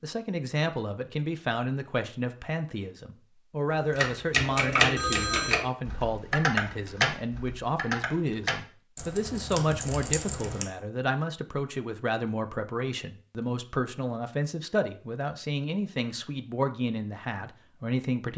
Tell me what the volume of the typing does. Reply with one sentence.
The volume of the typing goes down.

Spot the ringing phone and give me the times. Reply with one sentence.
You can hear the ringing phone from 5.0 to 5.7 s.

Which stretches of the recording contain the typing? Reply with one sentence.
You can hear the typing from 4.0 to 10.7 s.